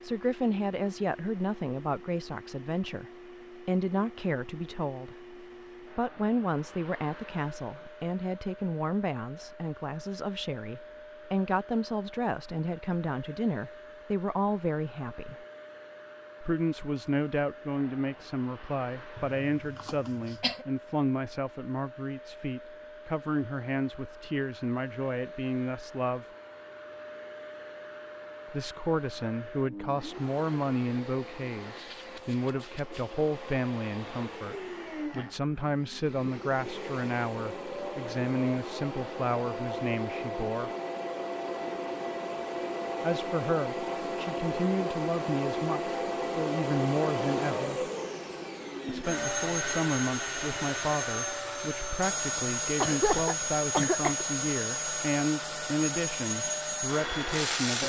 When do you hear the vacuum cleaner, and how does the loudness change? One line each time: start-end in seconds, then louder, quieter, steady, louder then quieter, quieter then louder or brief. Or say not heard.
0.0-57.8 louder.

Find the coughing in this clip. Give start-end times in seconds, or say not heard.
19.1-20.6, 52.8-54.2.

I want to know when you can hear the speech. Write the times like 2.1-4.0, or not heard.
0.0-15.4, 16.4-26.2, 28.5-40.7, 43.0-47.9, 48.9-57.8.